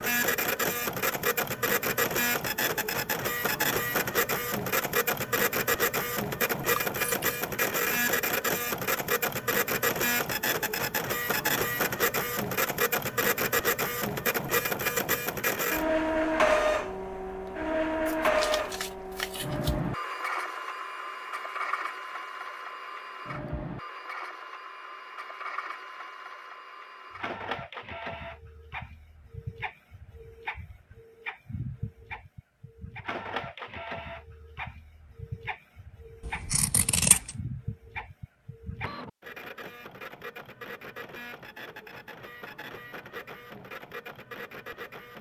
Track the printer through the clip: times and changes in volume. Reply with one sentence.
You can hear the printer from 0.0 to 45.1 s, getting quieter.